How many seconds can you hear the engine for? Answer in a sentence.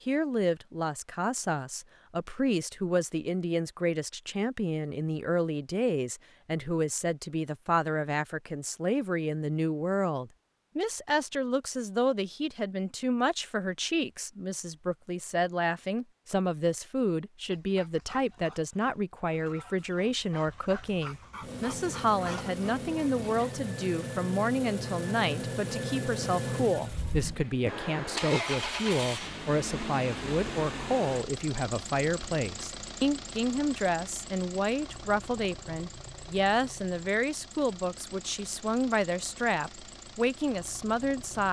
You can hear the engine for 20 seconds altogether.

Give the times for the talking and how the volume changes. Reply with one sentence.
The talking can be heard from 0.1 to 41.4 s, at a steady volume.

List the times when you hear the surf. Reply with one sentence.
You can't hear the surf here.